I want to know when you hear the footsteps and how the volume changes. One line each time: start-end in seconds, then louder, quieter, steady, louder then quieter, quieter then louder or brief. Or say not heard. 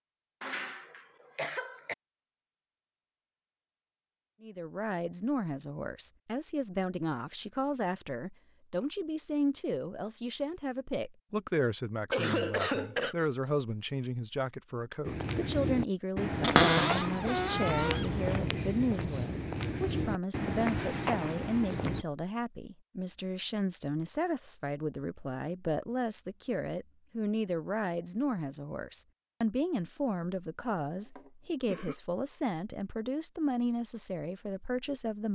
15.0-22.1 steady.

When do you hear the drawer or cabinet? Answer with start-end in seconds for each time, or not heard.
16.4-18.1.